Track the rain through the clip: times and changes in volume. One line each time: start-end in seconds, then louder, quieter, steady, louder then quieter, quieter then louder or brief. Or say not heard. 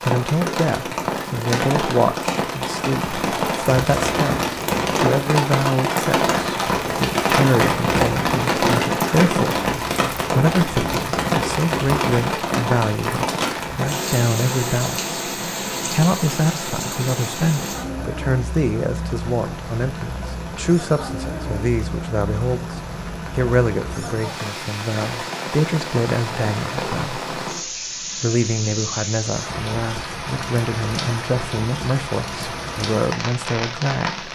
0.0-34.2 quieter.